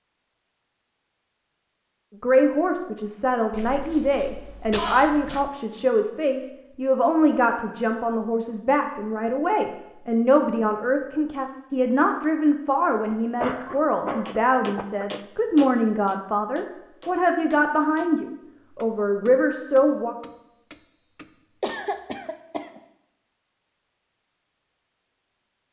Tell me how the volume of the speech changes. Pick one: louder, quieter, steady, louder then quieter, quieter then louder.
steady.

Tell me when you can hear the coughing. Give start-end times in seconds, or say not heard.
3.5-5.5, 12.8-15.1, 21.6-22.8.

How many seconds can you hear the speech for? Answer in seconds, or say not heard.
18 s.